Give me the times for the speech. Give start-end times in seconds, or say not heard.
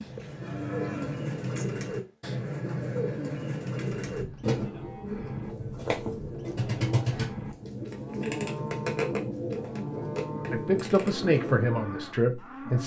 10.5-12.8.